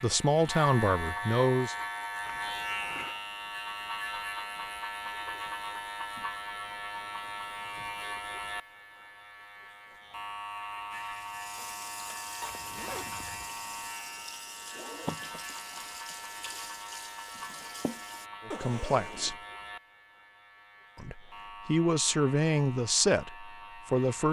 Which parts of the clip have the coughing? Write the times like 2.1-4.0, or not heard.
not heard.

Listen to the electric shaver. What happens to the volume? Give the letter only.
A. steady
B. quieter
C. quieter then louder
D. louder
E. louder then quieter
B.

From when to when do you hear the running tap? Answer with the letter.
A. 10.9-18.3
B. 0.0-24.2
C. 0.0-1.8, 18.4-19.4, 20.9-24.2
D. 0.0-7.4
A.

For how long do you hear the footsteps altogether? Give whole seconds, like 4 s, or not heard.
not heard.